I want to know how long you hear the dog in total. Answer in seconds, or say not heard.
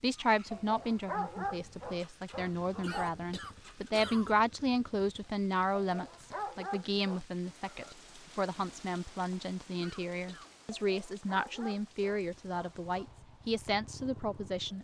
6 s.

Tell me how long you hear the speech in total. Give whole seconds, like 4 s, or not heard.
15 s.